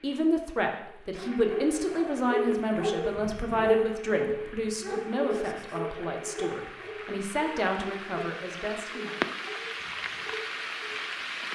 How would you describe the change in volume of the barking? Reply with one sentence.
The volume of the barking goes down.